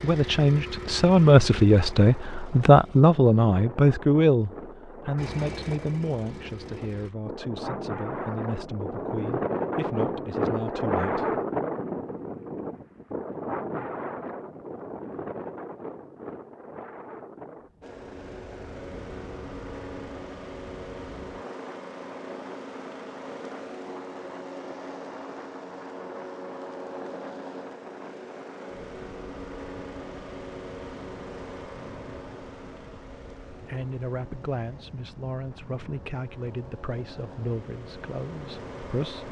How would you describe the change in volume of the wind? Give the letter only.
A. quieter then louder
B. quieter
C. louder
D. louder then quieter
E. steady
D.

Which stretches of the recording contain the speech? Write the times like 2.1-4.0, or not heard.
0.0-11.4, 33.6-39.2.